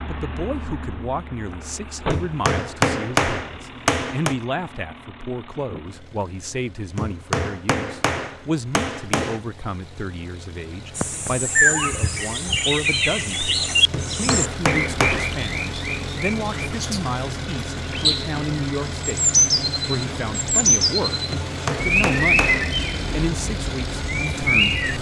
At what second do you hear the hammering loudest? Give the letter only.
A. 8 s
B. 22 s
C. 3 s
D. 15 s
C.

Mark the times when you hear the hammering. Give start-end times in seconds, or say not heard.
2.1-4.3, 7.0-9.4, 13.9-15.3, 21.3-22.8.